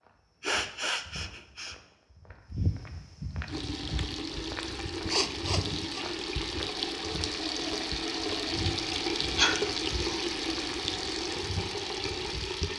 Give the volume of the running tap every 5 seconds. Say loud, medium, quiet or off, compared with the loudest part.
medium, loud, loud.